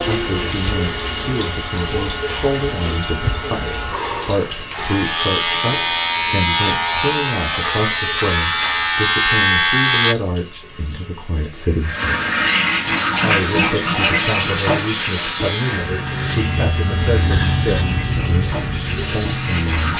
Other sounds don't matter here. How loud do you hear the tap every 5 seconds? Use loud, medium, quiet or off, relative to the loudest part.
medium, quiet, loud, medium.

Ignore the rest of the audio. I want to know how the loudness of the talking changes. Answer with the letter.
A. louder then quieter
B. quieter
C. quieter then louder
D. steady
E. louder
D.